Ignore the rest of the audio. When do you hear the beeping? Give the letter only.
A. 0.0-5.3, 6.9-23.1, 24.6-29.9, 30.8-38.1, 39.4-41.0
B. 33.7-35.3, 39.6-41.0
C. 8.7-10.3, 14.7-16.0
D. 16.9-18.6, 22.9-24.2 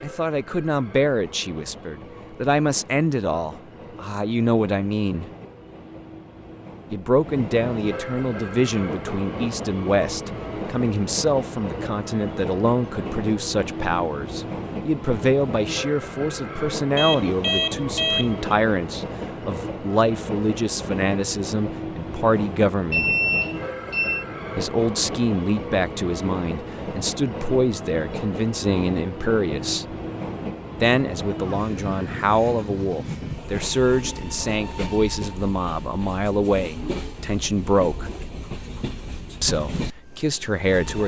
D.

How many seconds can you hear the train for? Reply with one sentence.
The train can be heard for 41 seconds in total.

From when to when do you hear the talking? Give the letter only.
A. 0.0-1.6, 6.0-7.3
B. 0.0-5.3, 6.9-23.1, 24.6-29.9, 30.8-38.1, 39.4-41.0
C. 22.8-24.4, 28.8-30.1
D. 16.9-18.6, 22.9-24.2
B.